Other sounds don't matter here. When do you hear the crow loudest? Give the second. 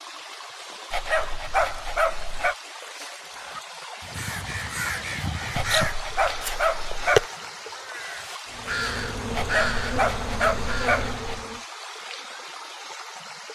7 s.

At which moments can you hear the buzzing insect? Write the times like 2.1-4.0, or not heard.
8.4-11.7.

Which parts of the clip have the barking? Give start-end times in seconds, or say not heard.
0.9-2.5, 5.5-7.2, 9.3-11.4.